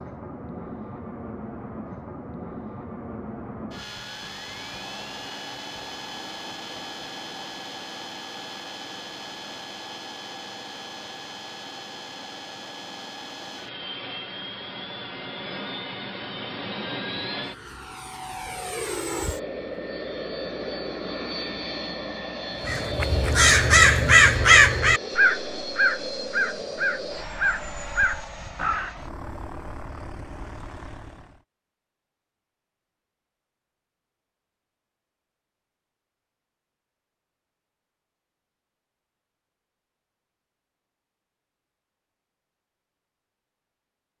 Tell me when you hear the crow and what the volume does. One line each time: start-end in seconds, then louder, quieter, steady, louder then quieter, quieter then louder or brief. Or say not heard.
22.6-28.9 quieter.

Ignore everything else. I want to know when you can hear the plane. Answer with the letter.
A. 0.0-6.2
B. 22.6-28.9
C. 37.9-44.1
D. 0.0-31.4
D.